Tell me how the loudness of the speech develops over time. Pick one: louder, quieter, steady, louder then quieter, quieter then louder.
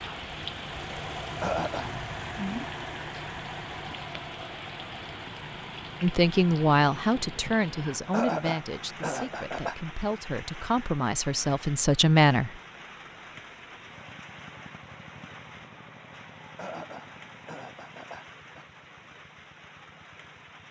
quieter then louder.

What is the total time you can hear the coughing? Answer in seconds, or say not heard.
4 s.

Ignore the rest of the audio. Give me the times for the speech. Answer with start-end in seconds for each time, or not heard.
6.0-12.6.